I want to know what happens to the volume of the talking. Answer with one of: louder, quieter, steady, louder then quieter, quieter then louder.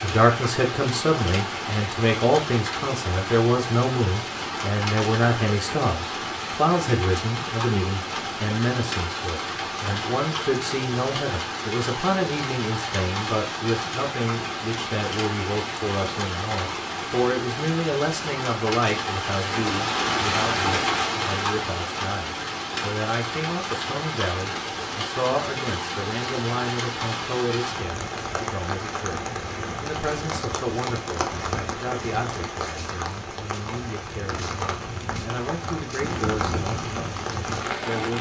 quieter.